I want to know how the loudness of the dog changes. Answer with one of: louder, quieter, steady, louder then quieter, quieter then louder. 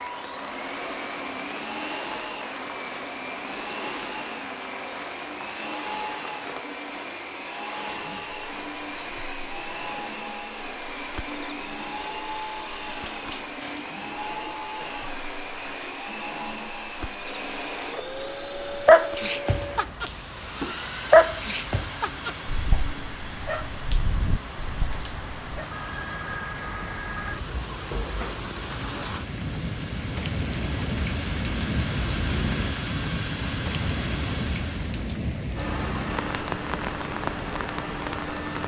louder then quieter.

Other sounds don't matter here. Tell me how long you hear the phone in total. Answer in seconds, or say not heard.
2 s.